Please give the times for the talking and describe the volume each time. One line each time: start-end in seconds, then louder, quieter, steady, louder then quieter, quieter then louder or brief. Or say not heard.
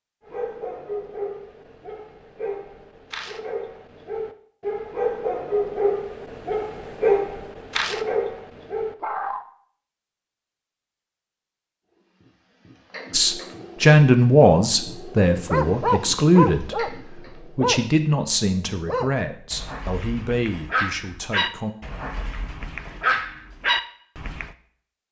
13.1-21.8 quieter.